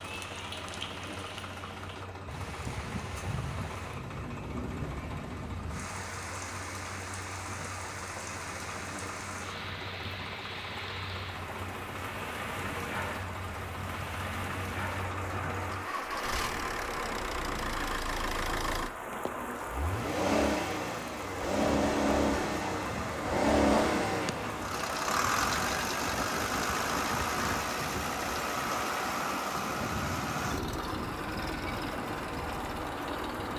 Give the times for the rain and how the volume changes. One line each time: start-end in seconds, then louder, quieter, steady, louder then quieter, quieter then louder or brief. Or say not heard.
0.0-33.5 steady.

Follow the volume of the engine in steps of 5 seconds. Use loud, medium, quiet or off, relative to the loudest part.
quiet, quiet, quiet, medium, loud, loud, medium.